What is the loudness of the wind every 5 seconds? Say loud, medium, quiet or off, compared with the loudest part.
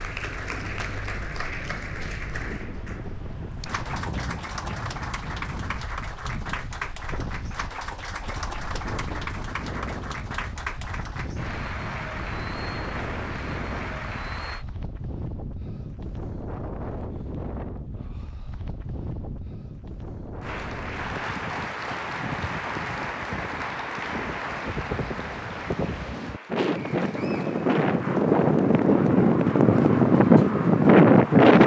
quiet, quiet, quiet, quiet, quiet, medium, loud.